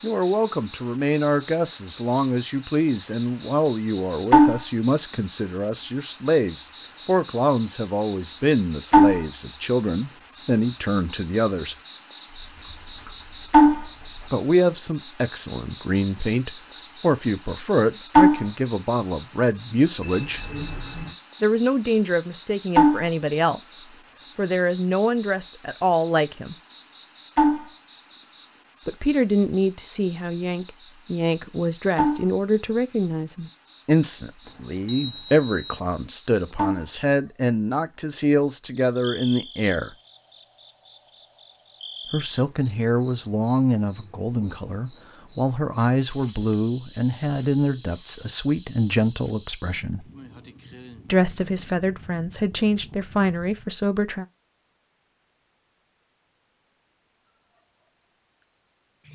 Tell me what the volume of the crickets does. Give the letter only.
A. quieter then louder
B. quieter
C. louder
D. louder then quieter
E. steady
B.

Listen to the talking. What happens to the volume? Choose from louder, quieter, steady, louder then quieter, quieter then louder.
steady.